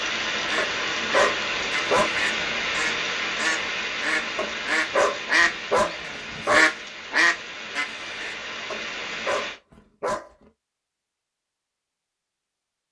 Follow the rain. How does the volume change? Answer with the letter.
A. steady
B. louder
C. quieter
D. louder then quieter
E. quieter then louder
C.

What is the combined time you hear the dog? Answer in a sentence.
The dog can be heard for 6 seconds in total.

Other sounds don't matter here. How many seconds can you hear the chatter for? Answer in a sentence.
You can't hear the chatter here.